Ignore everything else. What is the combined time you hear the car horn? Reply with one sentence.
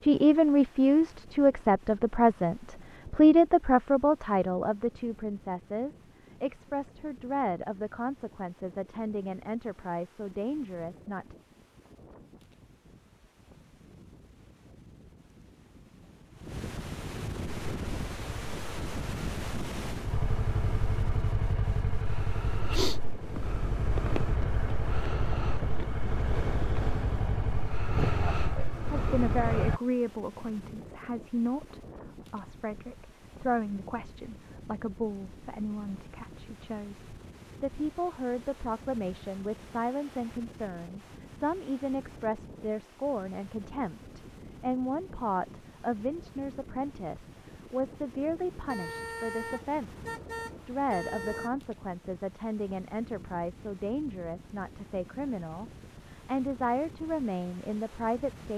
You can hear the car horn for 3 seconds altogether.